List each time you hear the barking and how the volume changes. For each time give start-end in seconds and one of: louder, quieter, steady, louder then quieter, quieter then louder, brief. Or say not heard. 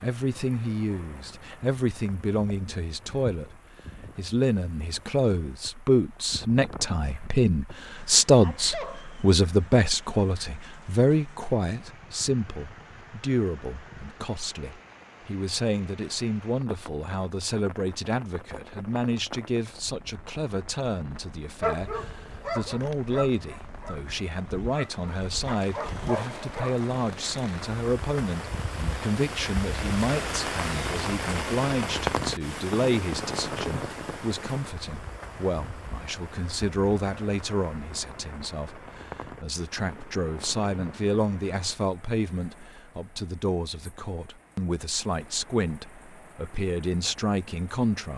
21.6-26.9 quieter then louder.